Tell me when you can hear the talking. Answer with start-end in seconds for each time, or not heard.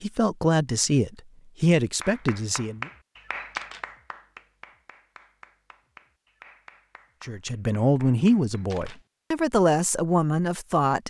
0.0-2.9, 7.2-11.0.